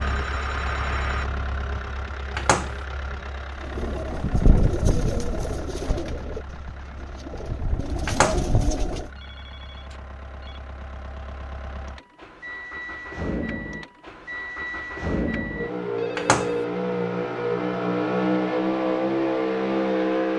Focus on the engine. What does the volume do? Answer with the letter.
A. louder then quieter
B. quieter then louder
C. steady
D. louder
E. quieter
B.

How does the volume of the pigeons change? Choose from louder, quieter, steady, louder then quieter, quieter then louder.
quieter then louder.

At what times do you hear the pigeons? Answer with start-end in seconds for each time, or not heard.
3.5-9.1.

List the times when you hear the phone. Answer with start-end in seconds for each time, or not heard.
0.0-1.2, 9.2-10.6, 15.9-16.8.